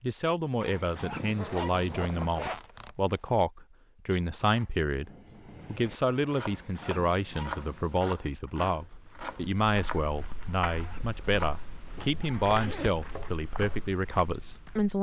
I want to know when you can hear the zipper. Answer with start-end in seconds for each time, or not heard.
1.4-3.3, 12.3-13.1.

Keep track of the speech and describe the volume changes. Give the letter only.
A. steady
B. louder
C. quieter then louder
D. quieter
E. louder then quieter
A.